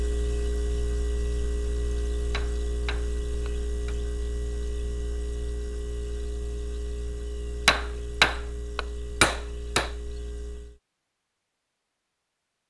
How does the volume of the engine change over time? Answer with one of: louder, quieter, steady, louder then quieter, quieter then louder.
quieter.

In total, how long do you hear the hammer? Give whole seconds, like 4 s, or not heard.
4 s.